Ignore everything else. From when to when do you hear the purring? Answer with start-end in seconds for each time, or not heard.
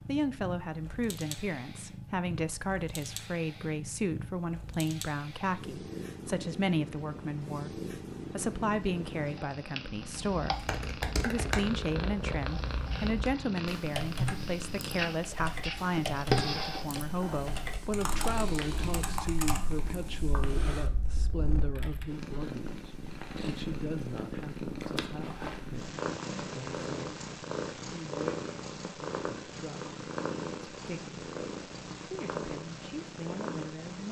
0.0-34.0.